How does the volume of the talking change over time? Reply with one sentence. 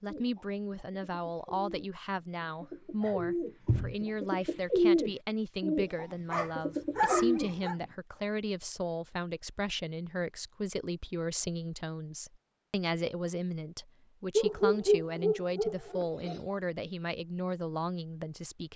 The volume of the talking stays about the same.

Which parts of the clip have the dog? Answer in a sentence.
The dog can be heard from 3.0 to 4.0 s, from 6.3 to 7.8 s and from 14.3 to 16.4 s.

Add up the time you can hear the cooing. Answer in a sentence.
The cooing can be heard for 8 seconds in total.